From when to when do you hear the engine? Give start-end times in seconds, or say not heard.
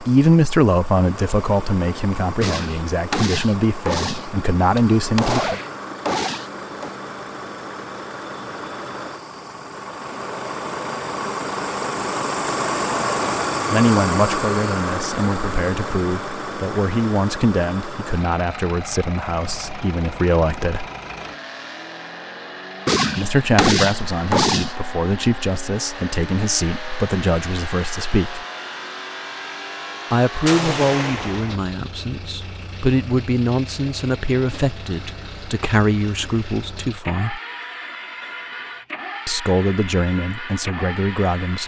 0.0-41.6.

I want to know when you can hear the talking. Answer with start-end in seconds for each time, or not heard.
0.0-5.6, 13.7-20.9, 23.1-28.4, 30.1-37.4, 39.2-41.6.